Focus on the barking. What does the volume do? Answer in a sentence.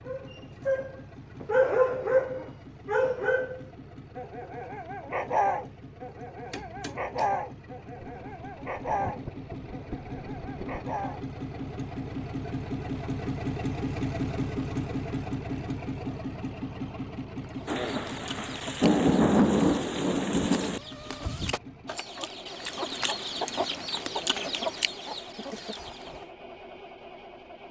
The volume of the barking goes down.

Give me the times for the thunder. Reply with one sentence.
The thunder can be heard from 8.0 to 10.8 s and from 17.6 to 20.8 s.